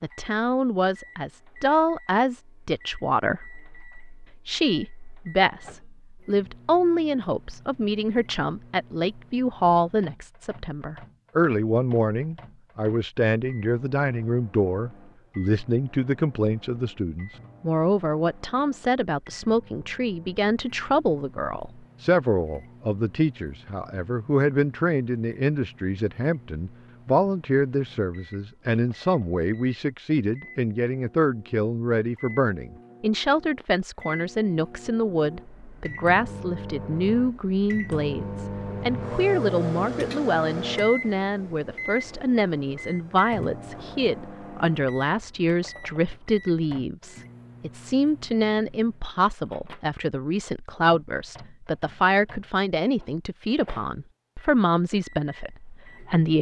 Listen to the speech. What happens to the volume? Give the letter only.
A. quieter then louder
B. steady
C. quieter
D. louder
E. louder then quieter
B.